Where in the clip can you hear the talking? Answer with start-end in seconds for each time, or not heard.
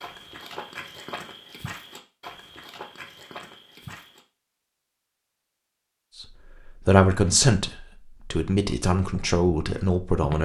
6.8-10.4.